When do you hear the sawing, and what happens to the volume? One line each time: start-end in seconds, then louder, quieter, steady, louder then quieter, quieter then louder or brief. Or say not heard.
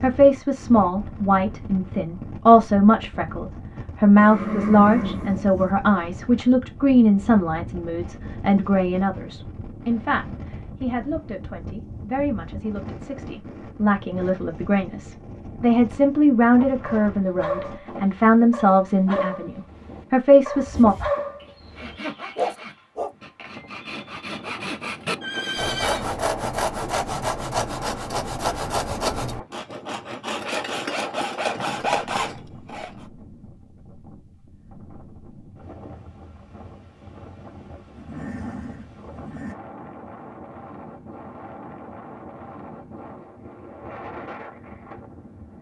20.6-33.0 louder.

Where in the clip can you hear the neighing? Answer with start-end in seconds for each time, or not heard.
4.2-5.7, 25.2-26.1, 38.0-39.5.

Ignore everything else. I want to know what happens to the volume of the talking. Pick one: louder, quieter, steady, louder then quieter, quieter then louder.
quieter then louder.